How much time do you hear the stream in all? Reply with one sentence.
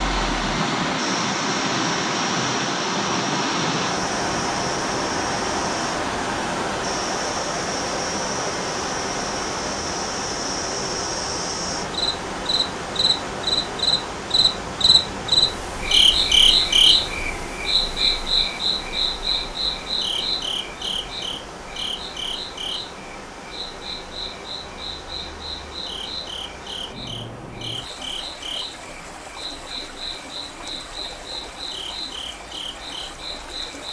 The stream can be heard for 34 seconds in total.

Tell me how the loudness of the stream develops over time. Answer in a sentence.
The loudness of the stream goes down.